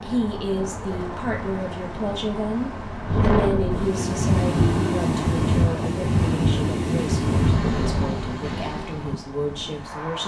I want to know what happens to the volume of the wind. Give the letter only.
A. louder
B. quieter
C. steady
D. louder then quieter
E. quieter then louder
A.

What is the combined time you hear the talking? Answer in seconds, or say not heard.
10 s.